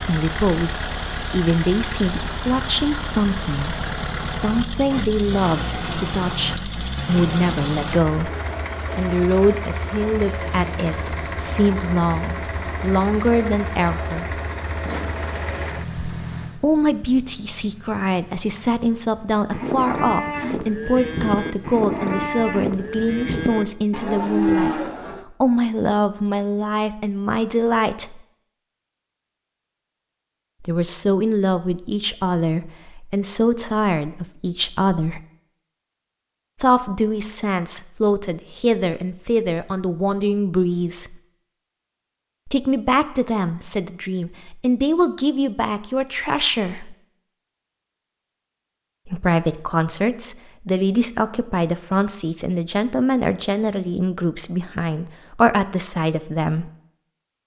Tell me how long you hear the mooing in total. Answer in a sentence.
You can hear the mooing for 6 seconds altogether.